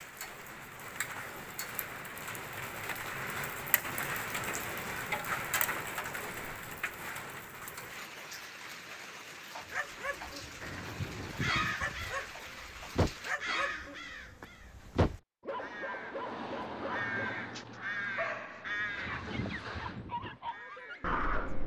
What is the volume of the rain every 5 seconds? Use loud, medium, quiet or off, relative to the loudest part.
loud, loud, loud, off, off.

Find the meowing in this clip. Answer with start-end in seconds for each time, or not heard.
not heard.